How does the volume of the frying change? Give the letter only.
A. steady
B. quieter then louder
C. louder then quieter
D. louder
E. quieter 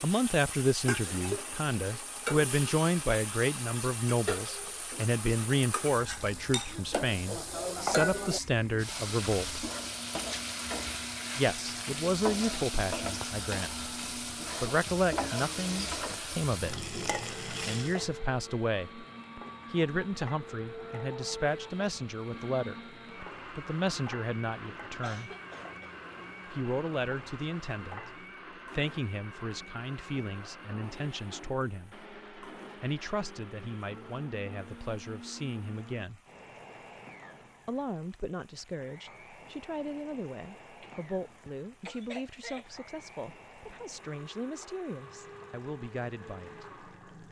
E.